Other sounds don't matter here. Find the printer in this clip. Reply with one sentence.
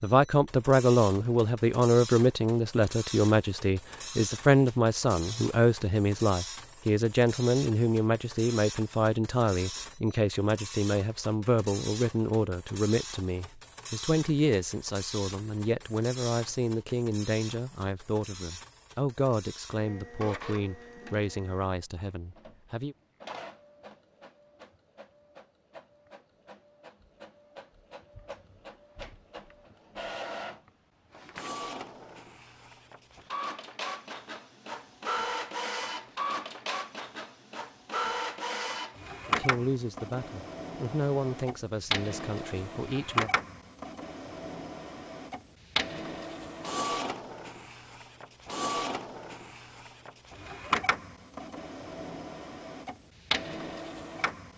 You can hear the printer from 0.0 to 54.5 s.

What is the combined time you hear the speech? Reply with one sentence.
You can hear the speech for 27 seconds altogether.